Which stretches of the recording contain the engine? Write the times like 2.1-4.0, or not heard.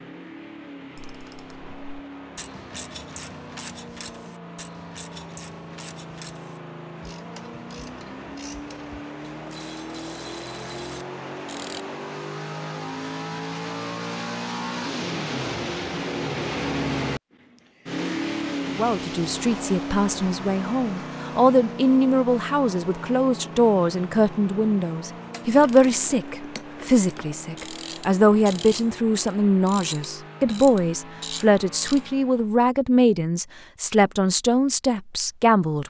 0.0-32.5.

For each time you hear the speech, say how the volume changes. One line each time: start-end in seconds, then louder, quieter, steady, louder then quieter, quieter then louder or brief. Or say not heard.
18.6-35.8 steady.